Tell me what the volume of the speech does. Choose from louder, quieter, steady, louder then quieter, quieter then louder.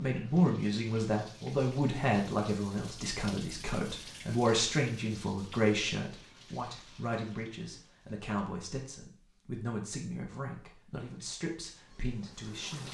quieter.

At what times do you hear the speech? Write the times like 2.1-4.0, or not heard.
0.0-12.9.